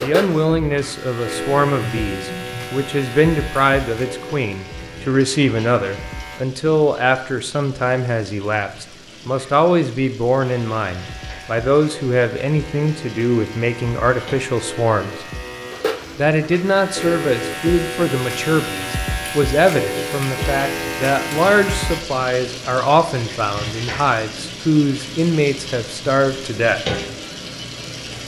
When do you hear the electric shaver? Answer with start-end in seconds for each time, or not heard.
0.0-6.5, 10.4-22.1.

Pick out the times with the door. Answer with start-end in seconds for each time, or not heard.
not heard.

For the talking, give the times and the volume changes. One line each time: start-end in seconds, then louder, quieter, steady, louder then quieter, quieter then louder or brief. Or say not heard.
0.0-15.2 steady
16.1-26.8 steady.